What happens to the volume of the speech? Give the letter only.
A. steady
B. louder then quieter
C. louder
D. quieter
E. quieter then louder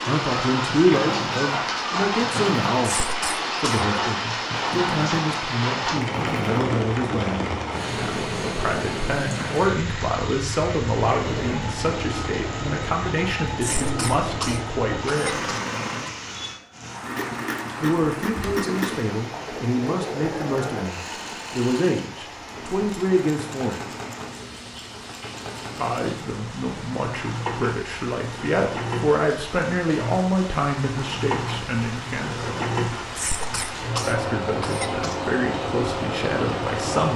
A.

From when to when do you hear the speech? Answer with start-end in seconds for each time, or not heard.
0.0-3.0, 3.6-15.4, 17.8-23.9, 25.8-32.6, 34.0-37.1.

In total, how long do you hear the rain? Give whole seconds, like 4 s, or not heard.
37 s.